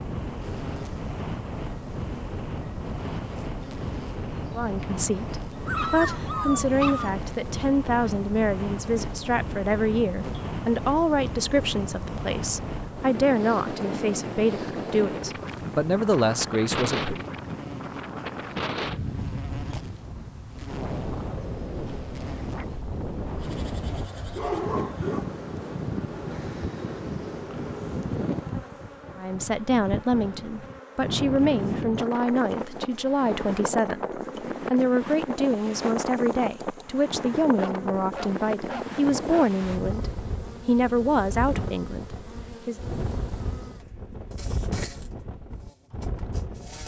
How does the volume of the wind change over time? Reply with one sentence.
The volume of the wind stays about the same.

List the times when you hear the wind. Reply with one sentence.
You can hear the wind from 0.0 to 46.8 s.